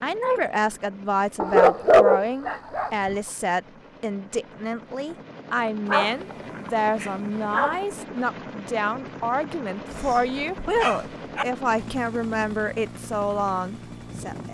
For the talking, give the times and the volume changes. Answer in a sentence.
You can hear the talking from 0.0 to 14.4 s, at a steady volume.